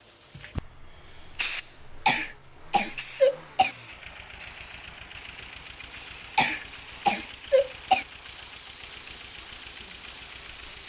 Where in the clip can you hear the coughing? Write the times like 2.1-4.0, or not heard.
2.0-3.8, 6.3-8.1.